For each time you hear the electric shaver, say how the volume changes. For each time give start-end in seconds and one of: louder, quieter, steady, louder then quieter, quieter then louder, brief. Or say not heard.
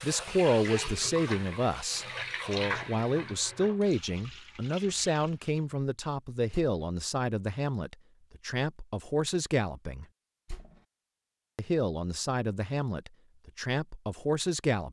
not heard.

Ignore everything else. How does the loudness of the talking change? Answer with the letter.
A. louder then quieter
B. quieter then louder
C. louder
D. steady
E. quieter
D.